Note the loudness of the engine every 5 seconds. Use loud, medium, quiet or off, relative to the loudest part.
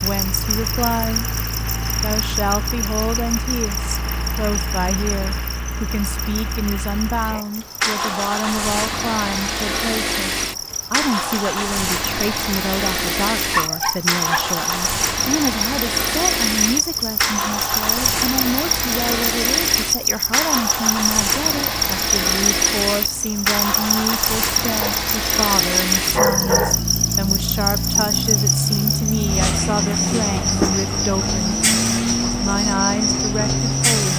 medium, loud, loud, loud, loud, loud, loud.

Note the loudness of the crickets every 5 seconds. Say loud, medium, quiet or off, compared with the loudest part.
medium, quiet, medium, loud, loud, loud, loud.